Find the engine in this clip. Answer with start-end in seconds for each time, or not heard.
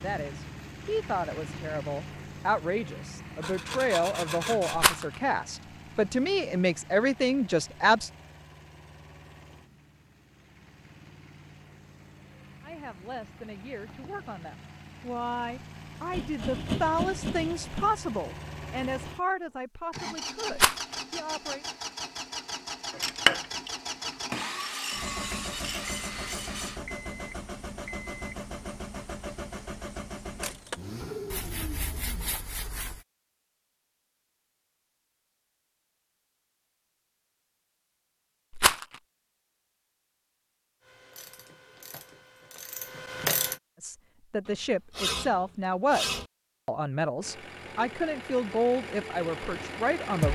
0.0-32.4, 47.2-50.2.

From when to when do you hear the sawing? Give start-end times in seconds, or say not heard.
3.4-5.0, 16.1-17.9, 24.3-26.8, 31.3-33.0, 44.5-46.3.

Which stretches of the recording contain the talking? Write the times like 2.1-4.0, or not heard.
0.0-8.1, 12.6-21.6, 43.8-50.2.